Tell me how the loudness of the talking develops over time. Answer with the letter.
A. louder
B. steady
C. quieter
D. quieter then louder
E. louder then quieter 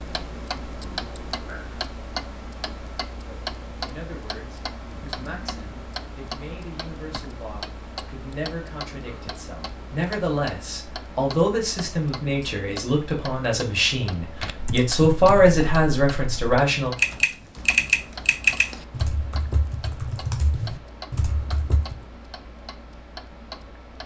A.